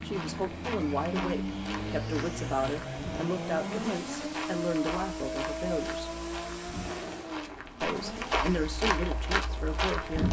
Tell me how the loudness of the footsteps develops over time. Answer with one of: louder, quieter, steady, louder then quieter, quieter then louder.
louder.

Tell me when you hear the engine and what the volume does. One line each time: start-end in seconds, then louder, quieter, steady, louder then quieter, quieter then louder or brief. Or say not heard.
0.0-9.9 quieter.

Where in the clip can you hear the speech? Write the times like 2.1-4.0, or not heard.
0.0-6.2, 7.8-10.2.